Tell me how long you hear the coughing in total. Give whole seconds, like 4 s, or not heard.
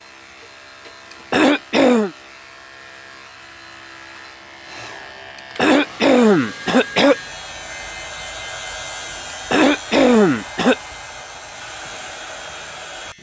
4 s.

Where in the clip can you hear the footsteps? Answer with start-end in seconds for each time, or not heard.
not heard.